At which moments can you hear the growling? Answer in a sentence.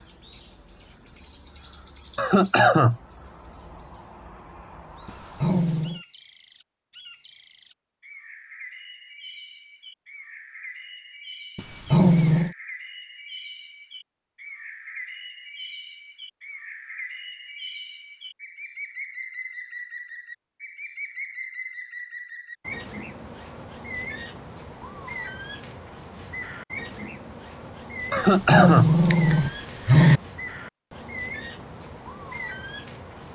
You can hear the growling from 5.0 to 6.0 s, from 11.6 to 12.6 s and from 28.1 to 30.2 s.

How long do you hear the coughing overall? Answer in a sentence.
You can hear the coughing for 2 seconds altogether.